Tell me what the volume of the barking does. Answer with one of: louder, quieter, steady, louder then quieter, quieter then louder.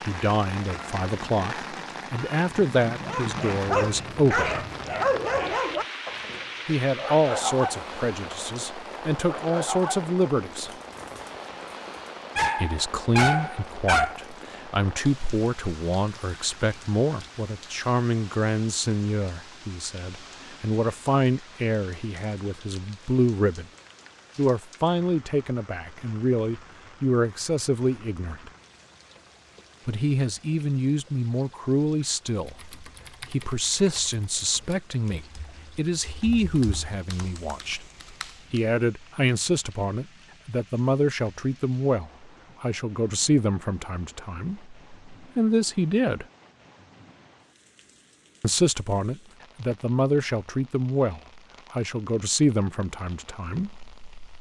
quieter then louder.